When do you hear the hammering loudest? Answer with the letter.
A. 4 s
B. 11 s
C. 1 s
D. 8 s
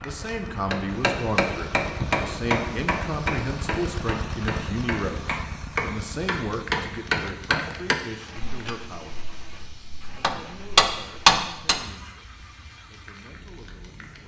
B.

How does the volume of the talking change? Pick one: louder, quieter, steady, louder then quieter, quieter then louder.
quieter.